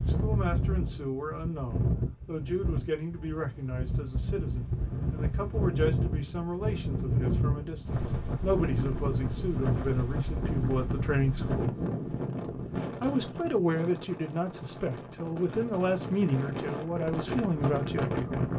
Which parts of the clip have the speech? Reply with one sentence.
You can hear the speech from 0.0 to 11.8 s and from 13.0 to 18.1 s.